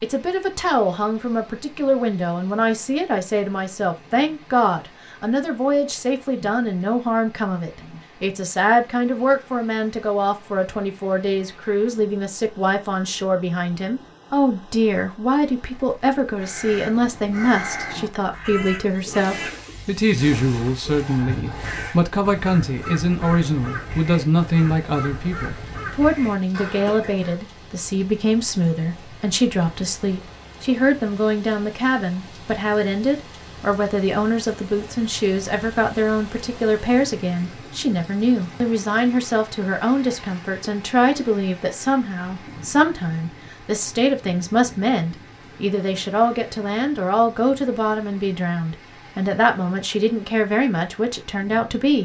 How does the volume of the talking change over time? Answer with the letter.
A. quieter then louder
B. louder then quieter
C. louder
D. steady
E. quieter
D.